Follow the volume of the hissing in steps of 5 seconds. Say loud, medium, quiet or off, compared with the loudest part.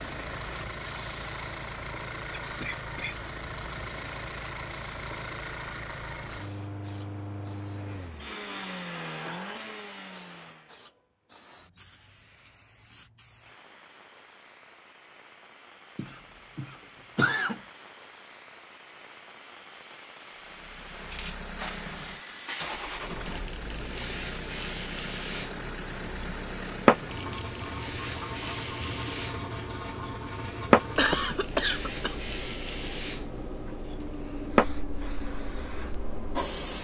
quiet, quiet, quiet, quiet, medium, loud, loud, medium.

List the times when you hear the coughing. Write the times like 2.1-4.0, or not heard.
2.4-3.1, 15.9-17.6, 30.9-32.1.